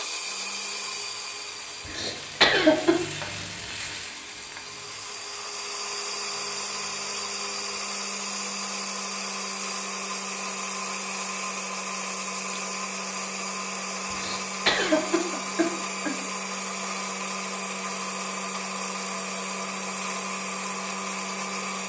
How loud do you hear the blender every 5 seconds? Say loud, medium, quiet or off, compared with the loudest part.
medium, loud, loud, loud, loud.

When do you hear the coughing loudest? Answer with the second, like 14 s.
3 s.